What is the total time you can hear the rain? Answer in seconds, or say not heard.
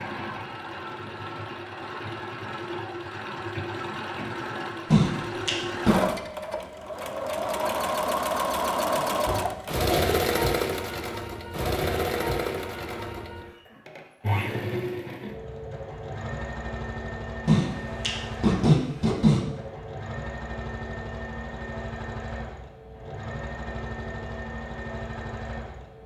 not heard.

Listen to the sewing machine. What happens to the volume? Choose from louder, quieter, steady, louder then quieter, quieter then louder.
louder then quieter.